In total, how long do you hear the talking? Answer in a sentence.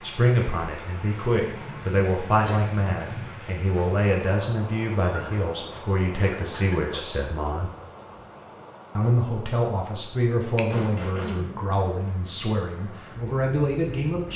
You can hear the talking for 13 seconds altogether.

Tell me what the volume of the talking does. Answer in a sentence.
The volume of the talking stays about the same.